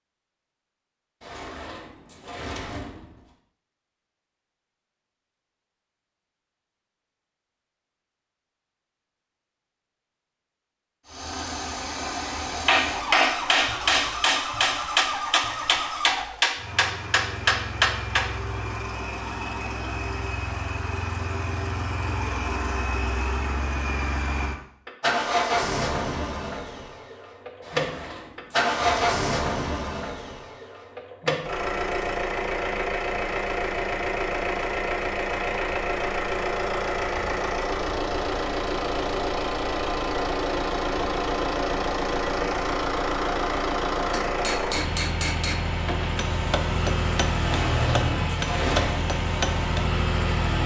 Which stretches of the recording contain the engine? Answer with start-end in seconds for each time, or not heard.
11.1-50.6.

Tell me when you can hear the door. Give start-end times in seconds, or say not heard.
1.2-3.1, 27.6-29.2, 47.4-49.0.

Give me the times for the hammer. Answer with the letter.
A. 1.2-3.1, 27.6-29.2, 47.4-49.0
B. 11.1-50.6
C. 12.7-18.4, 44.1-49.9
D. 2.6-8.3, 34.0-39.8
C.